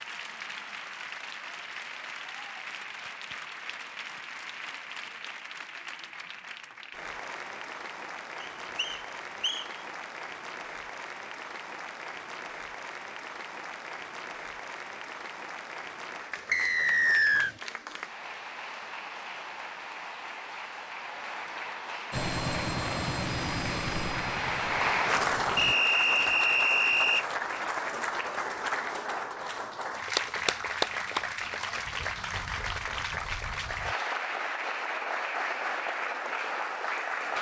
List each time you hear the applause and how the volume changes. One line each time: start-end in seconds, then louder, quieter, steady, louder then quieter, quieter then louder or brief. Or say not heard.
0.0-37.3 louder.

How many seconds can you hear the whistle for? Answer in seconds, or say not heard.
4 s.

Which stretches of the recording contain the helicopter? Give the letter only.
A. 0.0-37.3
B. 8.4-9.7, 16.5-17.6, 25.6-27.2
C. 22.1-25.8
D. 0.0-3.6
C.